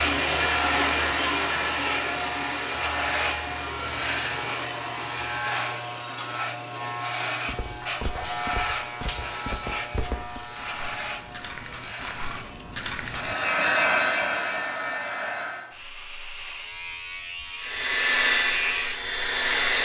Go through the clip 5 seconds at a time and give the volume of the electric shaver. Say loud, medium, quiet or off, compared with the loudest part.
loud, loud, medium, medium.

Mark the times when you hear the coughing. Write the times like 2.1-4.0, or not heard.
not heard.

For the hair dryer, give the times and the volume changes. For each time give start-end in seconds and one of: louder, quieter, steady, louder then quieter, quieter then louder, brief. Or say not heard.
0.0-5.5 quieter
13.1-15.7 brief
17.6-19.7 brief.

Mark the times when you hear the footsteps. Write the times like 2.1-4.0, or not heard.
7.5-13.3.